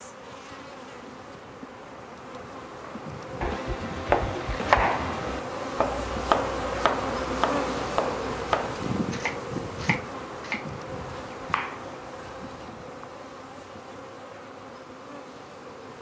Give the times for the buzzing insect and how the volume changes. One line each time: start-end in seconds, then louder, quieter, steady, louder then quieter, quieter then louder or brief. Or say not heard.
0.0-15.9 louder then quieter.